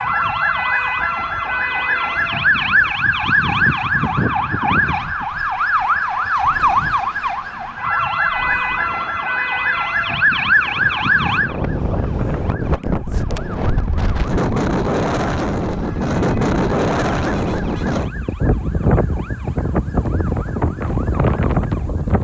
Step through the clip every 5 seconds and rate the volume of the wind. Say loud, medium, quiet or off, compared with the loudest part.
quiet, quiet, loud, loud, loud.